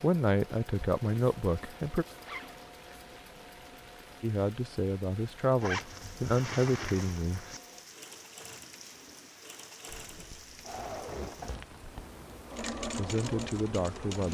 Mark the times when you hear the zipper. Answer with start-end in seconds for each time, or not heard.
2.1-2.6, 5.6-7.6, 10.1-12.1.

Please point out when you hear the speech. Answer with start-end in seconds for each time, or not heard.
0.0-2.0, 4.2-7.5, 12.8-14.2.